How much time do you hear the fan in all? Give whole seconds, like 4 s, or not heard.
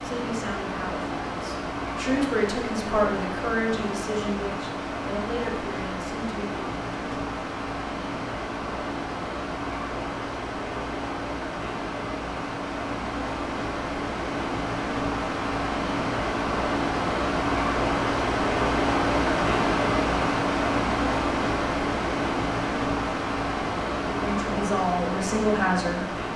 26 s.